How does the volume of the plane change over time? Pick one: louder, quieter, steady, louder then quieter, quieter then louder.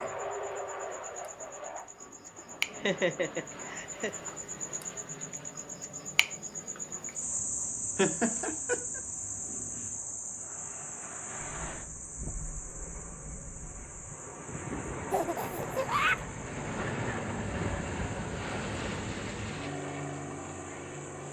quieter then louder.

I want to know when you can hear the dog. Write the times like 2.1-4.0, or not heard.
not heard.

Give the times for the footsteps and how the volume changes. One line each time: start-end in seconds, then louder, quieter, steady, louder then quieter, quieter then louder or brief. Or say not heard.
not heard.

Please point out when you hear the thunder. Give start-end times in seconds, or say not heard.
11.4-14.1.